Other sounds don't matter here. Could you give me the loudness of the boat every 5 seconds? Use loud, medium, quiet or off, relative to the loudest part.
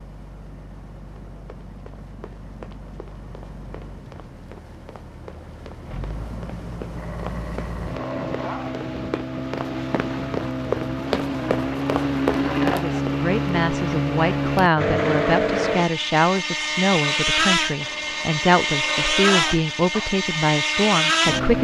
quiet, medium, loud, loud, loud.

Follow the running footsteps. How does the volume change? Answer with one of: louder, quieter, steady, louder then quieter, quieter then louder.
louder.